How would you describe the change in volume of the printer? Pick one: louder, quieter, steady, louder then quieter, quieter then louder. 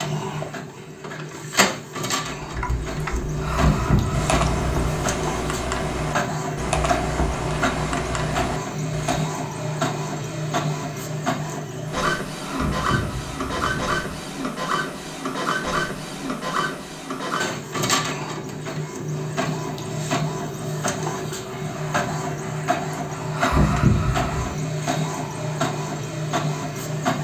steady.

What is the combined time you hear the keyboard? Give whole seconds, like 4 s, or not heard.
7 s.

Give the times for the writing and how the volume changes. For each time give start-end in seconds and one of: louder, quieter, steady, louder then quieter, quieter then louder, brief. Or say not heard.
not heard.